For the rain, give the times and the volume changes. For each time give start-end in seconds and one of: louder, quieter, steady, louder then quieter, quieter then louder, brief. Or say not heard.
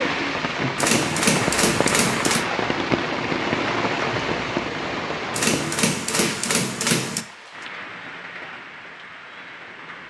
0.0-10.0 quieter.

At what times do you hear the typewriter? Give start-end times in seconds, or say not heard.
0.8-2.5, 5.3-7.2.